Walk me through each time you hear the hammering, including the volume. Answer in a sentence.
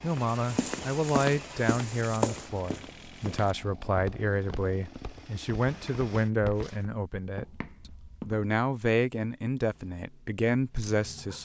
The hammering can't be heard in this clip.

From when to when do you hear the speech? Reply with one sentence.
You can hear the speech from 0.0 to 7.5 s and from 8.2 to 11.4 s.